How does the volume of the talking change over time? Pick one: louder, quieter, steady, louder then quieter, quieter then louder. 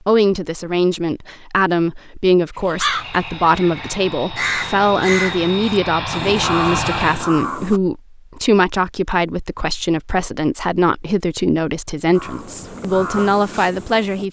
steady.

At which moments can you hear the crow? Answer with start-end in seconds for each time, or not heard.
2.5-7.8, 12.1-14.2.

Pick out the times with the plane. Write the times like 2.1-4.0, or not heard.
2.6-7.3.